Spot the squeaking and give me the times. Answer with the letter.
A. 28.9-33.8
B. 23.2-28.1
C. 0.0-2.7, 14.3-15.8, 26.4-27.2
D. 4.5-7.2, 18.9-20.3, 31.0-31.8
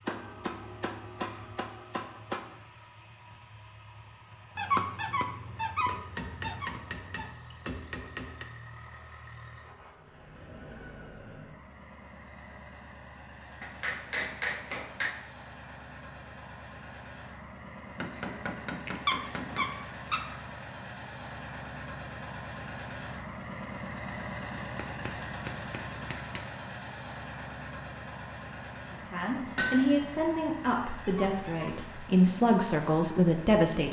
D.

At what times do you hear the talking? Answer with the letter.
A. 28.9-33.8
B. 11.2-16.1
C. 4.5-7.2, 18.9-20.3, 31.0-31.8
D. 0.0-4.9
A.